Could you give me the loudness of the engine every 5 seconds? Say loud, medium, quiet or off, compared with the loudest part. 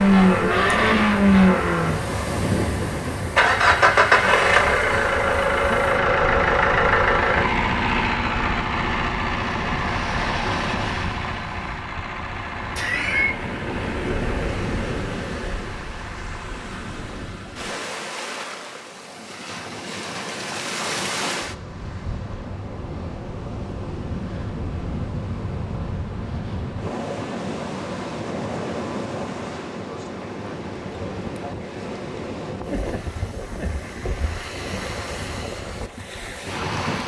loud, loud, quiet, quiet, off, off, off, off.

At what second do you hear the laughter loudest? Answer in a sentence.
The volume of the laughter peaks at 13 seconds.